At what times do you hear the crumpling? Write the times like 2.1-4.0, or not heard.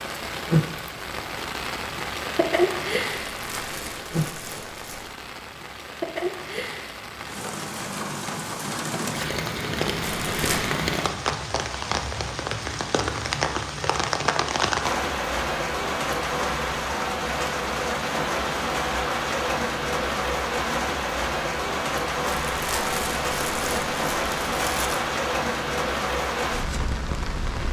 3.2-5.2, 10.1-10.7, 22.5-25.0.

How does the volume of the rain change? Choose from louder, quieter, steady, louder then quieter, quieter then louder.
steady.